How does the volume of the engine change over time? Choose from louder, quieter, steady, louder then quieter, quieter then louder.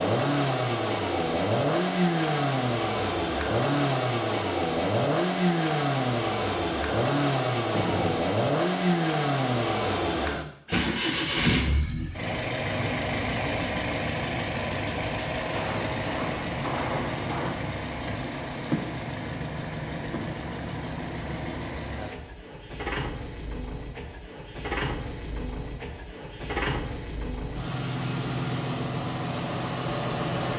quieter.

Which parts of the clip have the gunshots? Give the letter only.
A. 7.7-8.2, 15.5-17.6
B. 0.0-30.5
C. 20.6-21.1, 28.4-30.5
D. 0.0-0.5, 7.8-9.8
A.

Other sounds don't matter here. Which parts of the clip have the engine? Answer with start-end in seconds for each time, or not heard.
0.0-30.5.